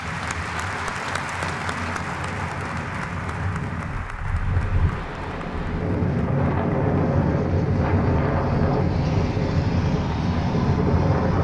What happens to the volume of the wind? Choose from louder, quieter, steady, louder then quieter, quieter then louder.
louder.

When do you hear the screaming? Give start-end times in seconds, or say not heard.
not heard.